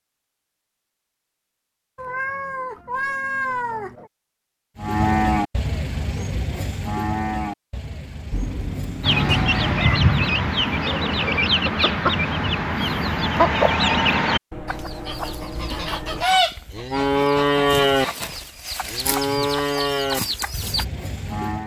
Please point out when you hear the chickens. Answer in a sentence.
The chickens can be heard from 9.0 to 20.9 s.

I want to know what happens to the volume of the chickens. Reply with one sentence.
The loudness of the chickens goes down.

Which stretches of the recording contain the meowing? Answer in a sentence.
You can hear the meowing from 1.9 to 4.1 s, from 8.3 to 10.0 s and from 14.5 to 16.2 s.